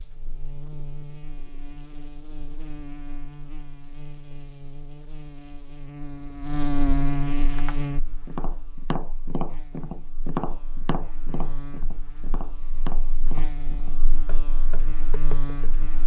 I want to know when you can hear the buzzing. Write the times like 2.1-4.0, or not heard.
0.0-16.0.